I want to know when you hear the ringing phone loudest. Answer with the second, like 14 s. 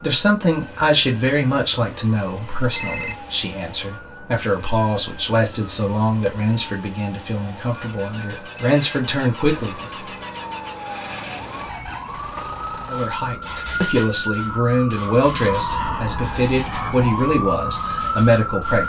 3 s.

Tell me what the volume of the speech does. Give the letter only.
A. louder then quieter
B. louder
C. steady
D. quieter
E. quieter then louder
C.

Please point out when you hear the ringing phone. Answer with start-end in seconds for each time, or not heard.
2.7-3.1, 8.6-9.0, 13.4-13.8.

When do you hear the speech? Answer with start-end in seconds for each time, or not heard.
0.0-9.8, 12.8-18.8.